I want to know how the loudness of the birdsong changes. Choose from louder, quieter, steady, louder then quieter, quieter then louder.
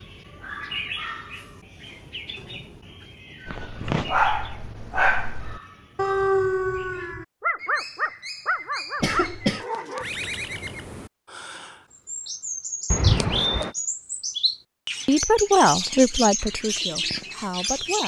quieter then louder.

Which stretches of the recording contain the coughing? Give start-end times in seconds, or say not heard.
3.5-4.1, 9.0-9.7, 12.9-13.8.